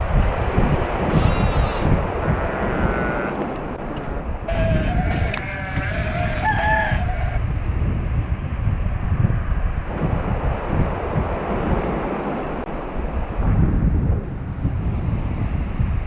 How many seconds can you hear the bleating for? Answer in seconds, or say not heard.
6 s.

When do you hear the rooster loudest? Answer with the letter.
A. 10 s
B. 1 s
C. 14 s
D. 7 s
D.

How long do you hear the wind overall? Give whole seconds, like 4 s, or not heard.
16 s.